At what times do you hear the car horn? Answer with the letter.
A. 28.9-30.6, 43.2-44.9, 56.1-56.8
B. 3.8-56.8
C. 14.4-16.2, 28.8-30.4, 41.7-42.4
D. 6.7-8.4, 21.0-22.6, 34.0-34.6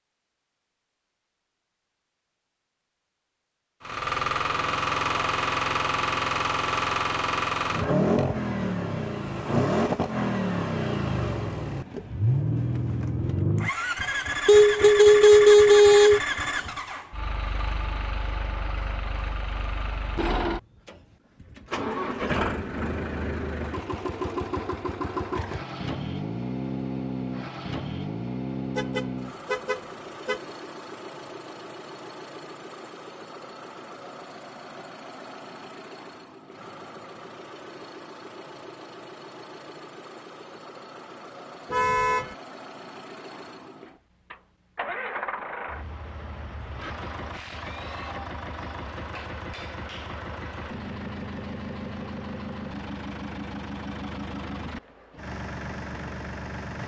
C.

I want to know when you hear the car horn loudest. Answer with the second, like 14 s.
15 s.